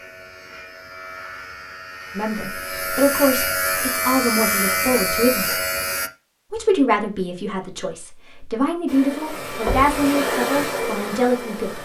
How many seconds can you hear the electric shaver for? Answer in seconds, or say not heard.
6 s.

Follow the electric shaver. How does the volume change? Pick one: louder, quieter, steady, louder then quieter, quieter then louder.
louder.